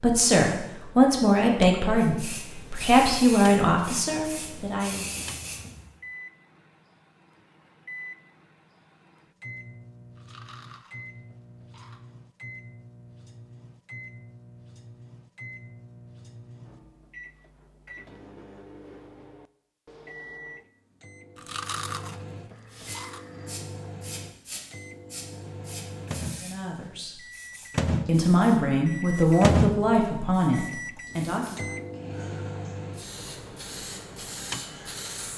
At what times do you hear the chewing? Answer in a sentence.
The chewing can be heard from 10.2 to 12.0 s and from 21.4 to 23.2 s.